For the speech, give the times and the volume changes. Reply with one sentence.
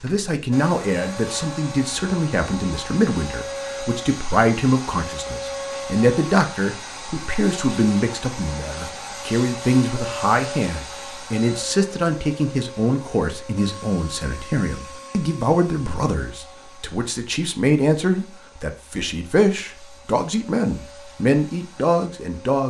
The speech can be heard from 0.0 to 22.6 s, at a steady volume.